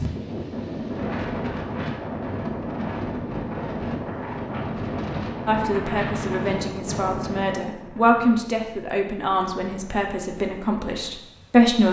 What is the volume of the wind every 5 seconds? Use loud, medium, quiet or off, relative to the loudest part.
loud, loud, quiet.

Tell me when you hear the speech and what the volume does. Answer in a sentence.
The speech can be heard from 5.5 to 11.8 s, getting louder then quieter.